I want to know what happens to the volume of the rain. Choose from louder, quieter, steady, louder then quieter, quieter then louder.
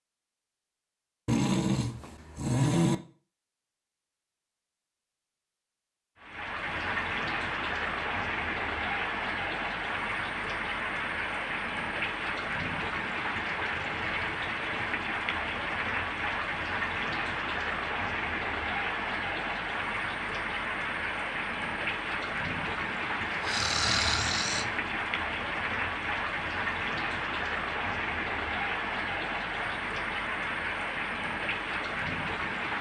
steady.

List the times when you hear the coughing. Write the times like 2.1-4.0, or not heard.
not heard.